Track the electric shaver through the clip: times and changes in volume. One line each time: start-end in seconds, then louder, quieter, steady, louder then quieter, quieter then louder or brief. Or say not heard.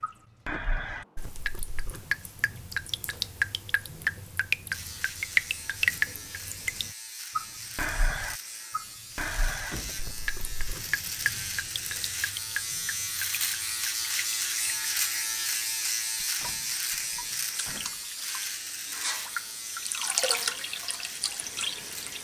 4.7-22.2 louder then quieter.